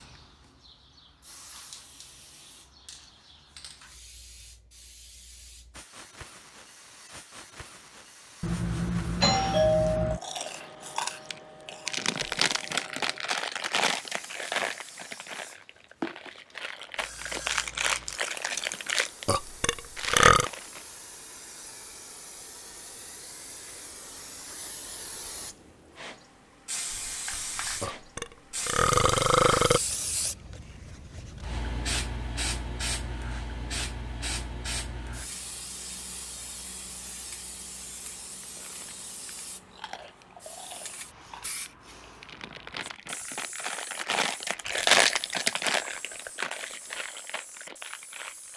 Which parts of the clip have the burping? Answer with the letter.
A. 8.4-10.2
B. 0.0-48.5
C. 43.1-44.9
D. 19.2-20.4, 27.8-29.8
D.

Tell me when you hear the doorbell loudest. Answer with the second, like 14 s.
10 s.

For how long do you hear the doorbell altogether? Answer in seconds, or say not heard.
2 s.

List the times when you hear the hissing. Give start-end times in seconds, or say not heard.
0.0-48.5.